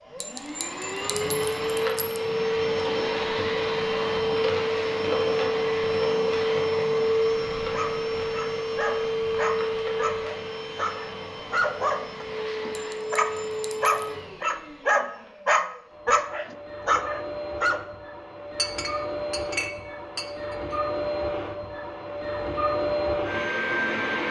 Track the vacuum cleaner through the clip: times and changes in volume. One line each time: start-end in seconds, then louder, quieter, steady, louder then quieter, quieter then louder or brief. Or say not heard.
0.1-24.2 quieter then louder.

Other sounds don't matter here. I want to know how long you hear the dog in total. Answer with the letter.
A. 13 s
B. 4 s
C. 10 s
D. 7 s
C.